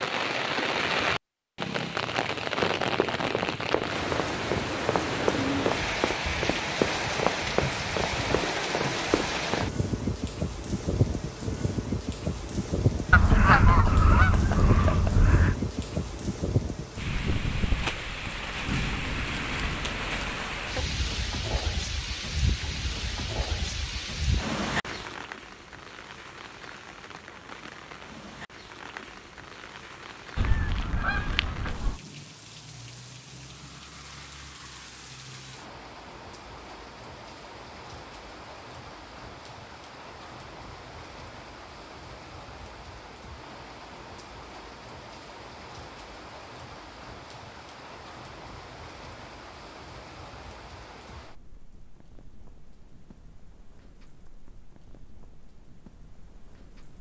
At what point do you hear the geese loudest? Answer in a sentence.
The loudest moment of the geese is at 14 seconds.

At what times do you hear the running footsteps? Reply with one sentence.
The running footsteps can be heard from 2.6 to 9.7 s.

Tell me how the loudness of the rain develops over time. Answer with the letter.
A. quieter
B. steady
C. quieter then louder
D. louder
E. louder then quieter
A.